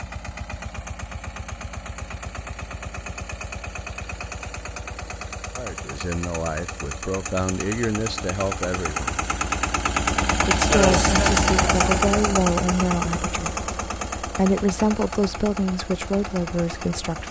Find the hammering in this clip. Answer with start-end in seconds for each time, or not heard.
not heard.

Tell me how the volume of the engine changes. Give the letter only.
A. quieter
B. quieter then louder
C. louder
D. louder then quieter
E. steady
D.